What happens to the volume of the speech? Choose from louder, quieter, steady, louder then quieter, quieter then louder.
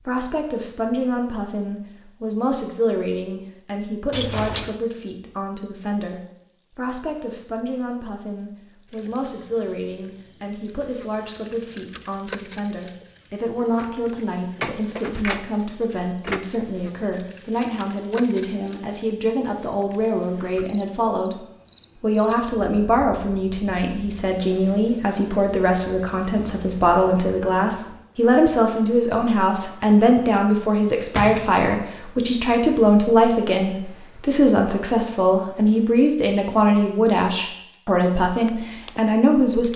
louder.